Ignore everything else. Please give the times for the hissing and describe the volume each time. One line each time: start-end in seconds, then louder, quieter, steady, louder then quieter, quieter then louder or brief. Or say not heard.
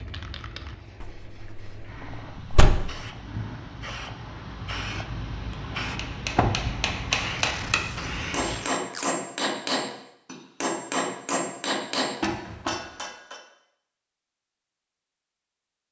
0.0-8.7 louder.